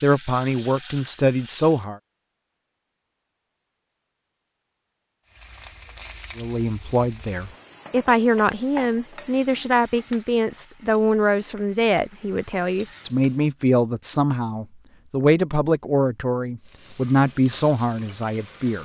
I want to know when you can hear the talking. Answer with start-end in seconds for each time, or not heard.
0.0-2.0, 6.3-18.7.